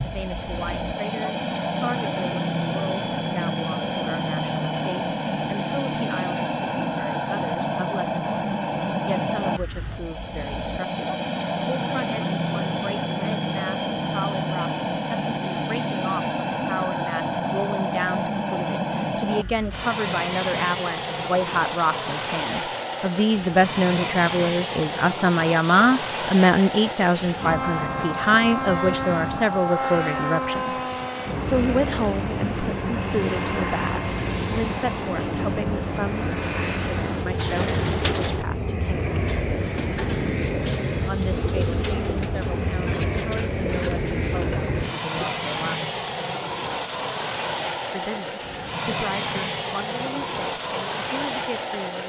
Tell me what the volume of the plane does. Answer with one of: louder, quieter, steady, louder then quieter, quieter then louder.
steady.